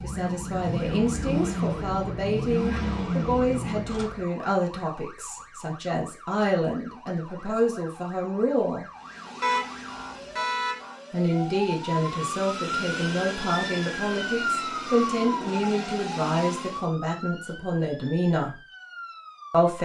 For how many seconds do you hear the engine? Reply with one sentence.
The engine can be heard for 12 seconds in total.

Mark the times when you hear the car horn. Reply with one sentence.
You can hear the car horn from 9.4 to 10.8 s.